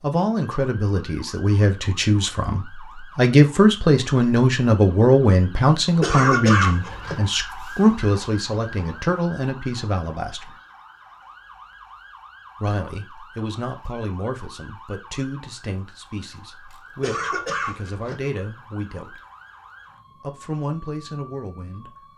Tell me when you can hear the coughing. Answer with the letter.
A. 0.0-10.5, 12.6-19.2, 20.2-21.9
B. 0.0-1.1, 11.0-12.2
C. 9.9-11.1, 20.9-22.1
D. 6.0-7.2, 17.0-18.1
D.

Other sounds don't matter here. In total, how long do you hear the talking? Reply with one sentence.
You can hear the talking for 19 seconds altogether.